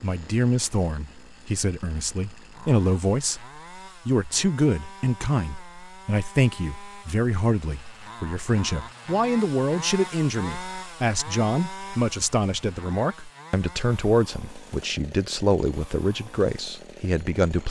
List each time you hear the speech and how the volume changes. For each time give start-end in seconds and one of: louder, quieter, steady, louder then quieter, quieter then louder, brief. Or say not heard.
0.0-17.6 steady.